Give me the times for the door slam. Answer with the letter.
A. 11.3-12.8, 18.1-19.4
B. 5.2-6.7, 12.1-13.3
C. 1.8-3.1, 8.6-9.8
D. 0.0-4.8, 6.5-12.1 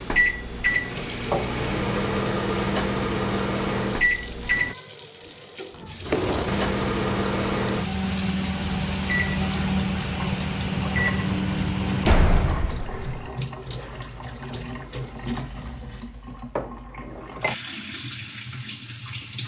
B.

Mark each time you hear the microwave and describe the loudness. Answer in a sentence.
You can hear the microwave from 0.0 to 4.8 s, at a steady volume; and from 6.5 to 12.1 s, at a steady volume.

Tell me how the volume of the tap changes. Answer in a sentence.
The loudness of the tap stays about the same.